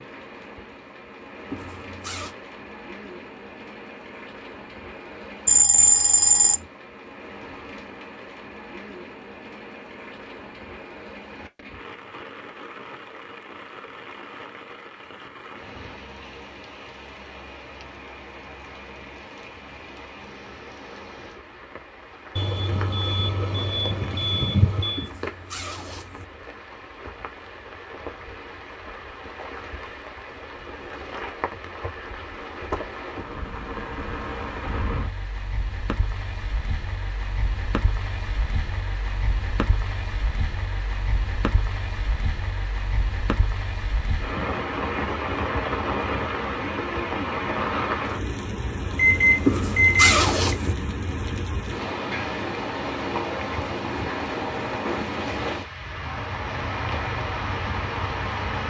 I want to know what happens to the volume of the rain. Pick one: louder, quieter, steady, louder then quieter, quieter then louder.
louder.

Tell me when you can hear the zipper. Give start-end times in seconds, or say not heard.
1.5-2.4, 24.9-26.2, 49.4-50.8.